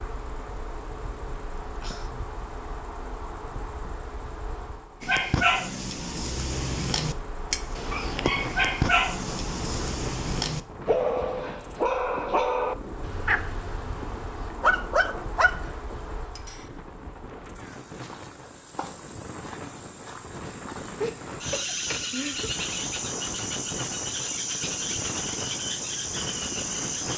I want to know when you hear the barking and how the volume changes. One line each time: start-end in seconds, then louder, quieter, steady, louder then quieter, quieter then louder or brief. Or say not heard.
5.0-16.8 steady.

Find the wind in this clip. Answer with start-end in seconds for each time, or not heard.
7.7-27.1.